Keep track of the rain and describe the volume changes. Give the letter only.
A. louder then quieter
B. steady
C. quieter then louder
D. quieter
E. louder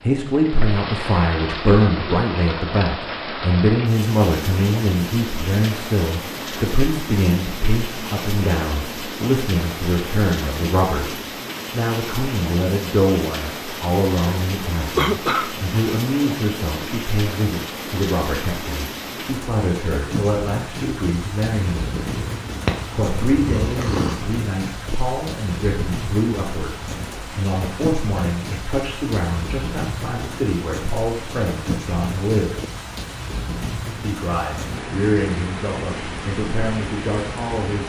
B.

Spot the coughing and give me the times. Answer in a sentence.
The coughing can be heard from 14.9 to 15.6 s.